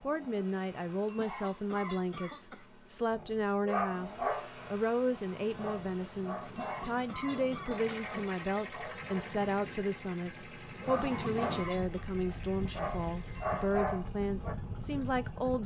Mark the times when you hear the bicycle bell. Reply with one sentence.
The bicycle bell can be heard from 1.1 to 1.5 s, from 6.5 to 7.0 s and from 13.3 to 13.8 s.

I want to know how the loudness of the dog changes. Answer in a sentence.
The volume of the dog goes down, then up.